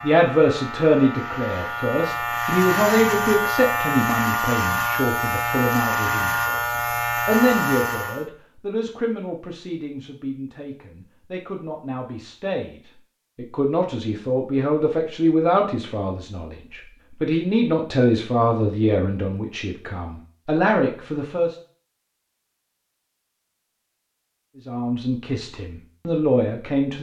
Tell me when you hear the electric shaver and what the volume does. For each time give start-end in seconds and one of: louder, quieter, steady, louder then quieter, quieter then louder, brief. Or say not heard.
0.0-8.2 louder.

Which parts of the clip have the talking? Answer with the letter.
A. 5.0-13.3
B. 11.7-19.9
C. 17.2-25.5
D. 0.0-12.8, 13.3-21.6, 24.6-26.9
D.